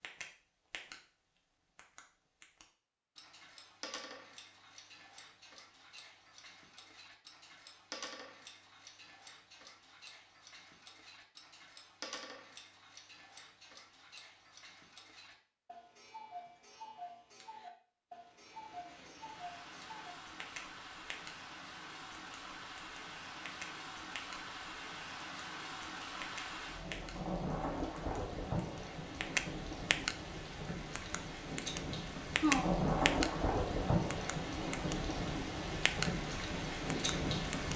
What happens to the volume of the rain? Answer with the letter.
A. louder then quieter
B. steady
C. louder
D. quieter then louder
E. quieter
C.